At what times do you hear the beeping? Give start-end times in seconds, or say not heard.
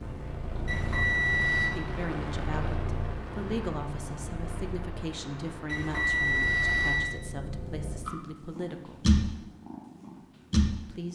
0.7-1.7, 5.7-7.2.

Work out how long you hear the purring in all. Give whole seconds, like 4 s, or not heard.
11 s.